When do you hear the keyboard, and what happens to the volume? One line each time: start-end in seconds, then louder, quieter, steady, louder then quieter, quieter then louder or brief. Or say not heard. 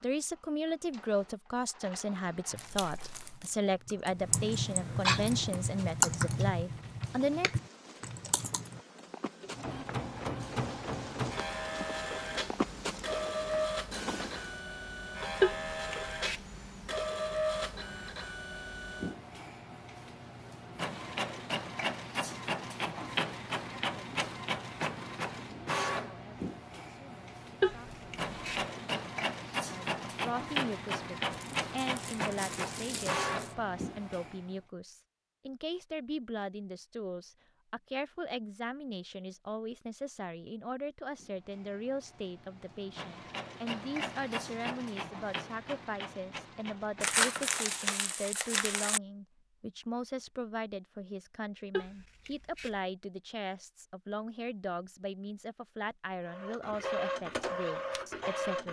2.5-8.8 louder then quieter.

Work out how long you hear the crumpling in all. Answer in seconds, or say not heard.
5 s.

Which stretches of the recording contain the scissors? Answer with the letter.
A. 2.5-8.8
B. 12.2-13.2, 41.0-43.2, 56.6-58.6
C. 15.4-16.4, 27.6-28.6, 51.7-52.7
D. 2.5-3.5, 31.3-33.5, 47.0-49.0
C.